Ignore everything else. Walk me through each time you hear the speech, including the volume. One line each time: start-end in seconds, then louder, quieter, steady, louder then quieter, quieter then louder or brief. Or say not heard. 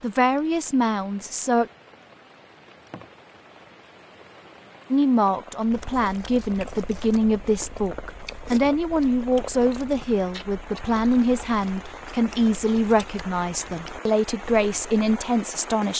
0.0-1.7 brief
4.9-15.9 steady.